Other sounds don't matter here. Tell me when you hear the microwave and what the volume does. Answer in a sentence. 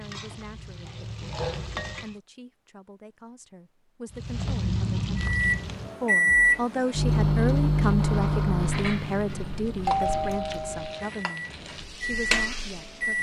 The microwave can be heard from 5.2 to 13.1 s, getting quieter then louder.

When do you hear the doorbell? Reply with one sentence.
The doorbell can be heard from 9.8 to 11.1 s.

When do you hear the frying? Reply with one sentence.
The frying can be heard from 0.0 to 2.1 s, from 4.1 to 6.0 s and from 8.6 to 13.1 s.